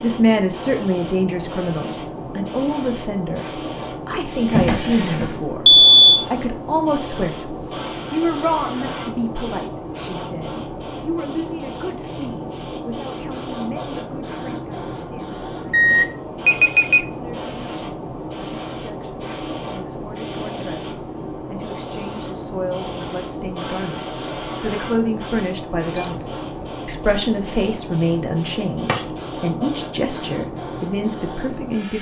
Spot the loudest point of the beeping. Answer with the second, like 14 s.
6 s.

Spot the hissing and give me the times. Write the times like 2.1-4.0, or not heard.
0.0-31.9.